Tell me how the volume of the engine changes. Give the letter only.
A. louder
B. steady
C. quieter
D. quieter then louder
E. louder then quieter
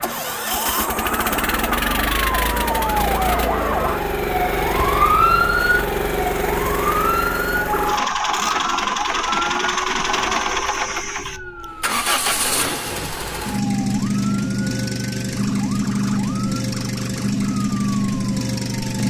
B.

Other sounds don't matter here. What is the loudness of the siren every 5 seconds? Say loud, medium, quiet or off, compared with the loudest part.
loud, loud, quiet, quiet.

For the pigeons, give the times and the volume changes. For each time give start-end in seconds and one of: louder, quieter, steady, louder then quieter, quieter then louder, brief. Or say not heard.
not heard.